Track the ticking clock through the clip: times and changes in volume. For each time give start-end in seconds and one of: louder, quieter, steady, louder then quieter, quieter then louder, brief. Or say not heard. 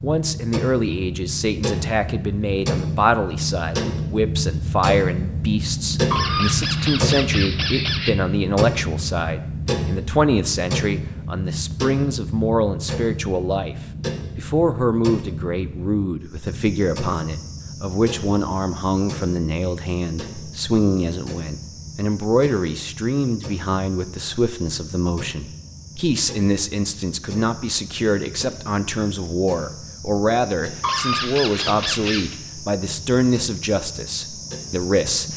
0.0-35.3 quieter.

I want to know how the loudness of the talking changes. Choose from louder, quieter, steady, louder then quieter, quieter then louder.
steady.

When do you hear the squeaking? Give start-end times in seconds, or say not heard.
6.1-8.1, 30.8-32.4.